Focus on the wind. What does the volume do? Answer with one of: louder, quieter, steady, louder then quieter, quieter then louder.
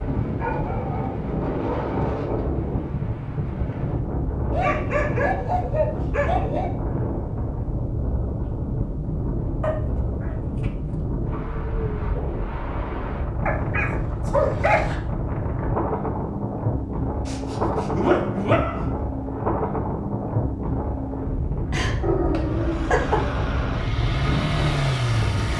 steady.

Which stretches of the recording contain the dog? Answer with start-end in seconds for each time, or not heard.
0.3-2.1, 4.5-6.8, 9.6-10.9, 13.4-15.0, 17.2-18.9, 21.7-23.2.